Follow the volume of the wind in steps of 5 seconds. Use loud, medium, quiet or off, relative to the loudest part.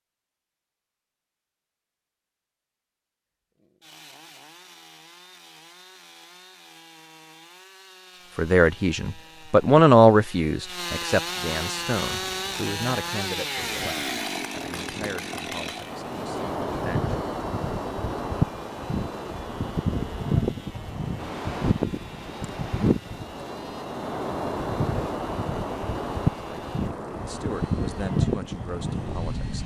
off, off, quiet, loud, loud, loud.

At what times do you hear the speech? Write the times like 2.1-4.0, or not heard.
8.3-17.1, 26.4-29.6.